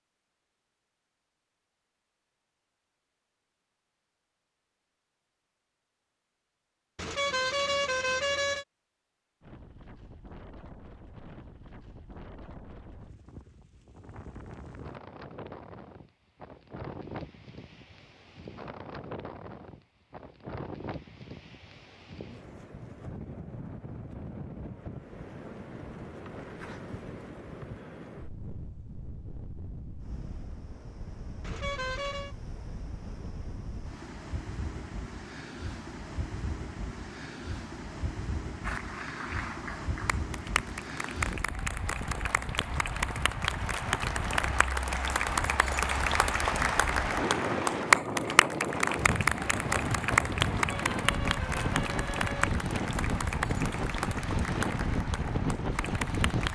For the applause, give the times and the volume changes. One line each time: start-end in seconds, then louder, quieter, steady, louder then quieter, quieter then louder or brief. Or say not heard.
38.6-56.5 louder then quieter.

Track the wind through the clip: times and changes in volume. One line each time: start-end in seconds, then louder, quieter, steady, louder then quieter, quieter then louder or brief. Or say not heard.
9.4-56.5 louder.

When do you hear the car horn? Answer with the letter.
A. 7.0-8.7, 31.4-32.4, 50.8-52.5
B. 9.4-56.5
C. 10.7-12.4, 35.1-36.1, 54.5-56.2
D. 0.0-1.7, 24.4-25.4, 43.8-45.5
A.